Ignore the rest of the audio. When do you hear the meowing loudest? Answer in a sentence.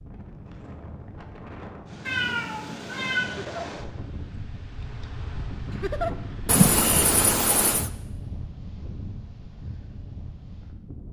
The volume of the meowing peaks at 7 seconds.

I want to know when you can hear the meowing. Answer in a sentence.
You can hear the meowing from 2.0 to 3.4 s and from 6.5 to 7.9 s.